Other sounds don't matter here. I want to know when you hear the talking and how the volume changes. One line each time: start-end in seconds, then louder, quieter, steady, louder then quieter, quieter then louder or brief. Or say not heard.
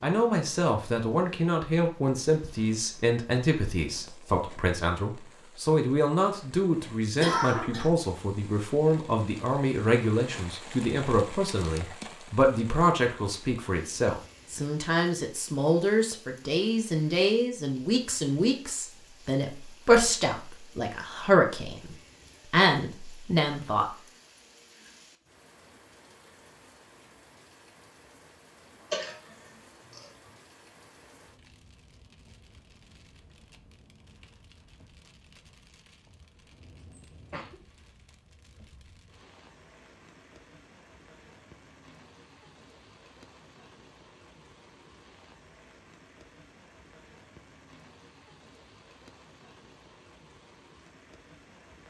0.0-23.9 steady.